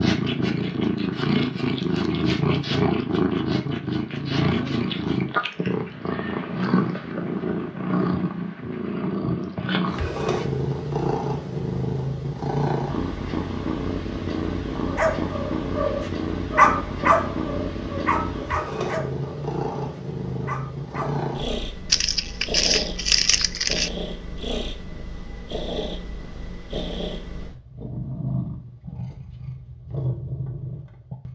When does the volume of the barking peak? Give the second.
17 s.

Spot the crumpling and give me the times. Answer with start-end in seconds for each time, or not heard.
21.9-23.9.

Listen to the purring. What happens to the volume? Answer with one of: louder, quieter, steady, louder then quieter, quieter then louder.
quieter.